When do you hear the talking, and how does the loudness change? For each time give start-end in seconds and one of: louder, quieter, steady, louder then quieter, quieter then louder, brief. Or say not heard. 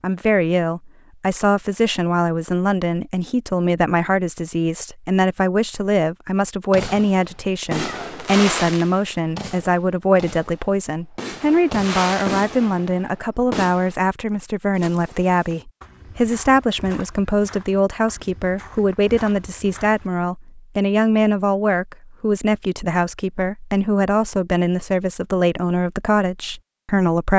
0.0-27.3 steady.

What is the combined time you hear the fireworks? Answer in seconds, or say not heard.
7 s.